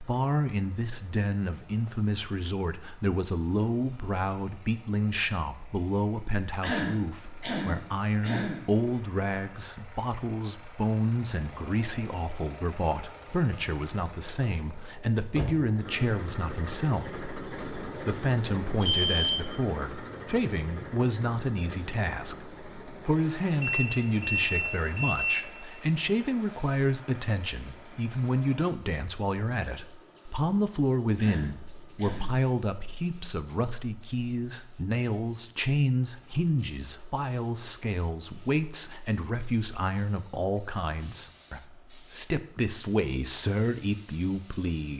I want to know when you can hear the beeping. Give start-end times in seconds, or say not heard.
18.8-19.4, 23.6-25.8.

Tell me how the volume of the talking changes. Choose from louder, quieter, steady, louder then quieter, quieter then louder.
steady.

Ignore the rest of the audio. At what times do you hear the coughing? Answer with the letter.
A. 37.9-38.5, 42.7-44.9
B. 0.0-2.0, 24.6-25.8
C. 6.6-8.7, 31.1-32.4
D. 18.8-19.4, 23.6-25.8
C.